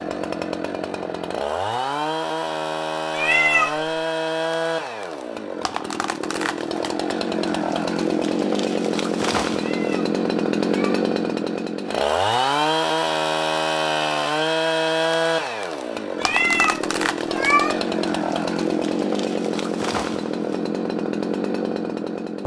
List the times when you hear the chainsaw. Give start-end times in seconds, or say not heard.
0.0-22.4.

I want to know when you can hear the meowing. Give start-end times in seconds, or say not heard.
3.1-3.9, 9.6-11.1, 16.2-17.9.